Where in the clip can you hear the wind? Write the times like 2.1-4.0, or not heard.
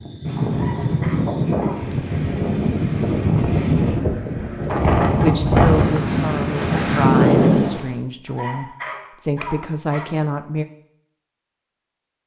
0.0-8.0.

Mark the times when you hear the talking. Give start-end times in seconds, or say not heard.
5.2-10.7.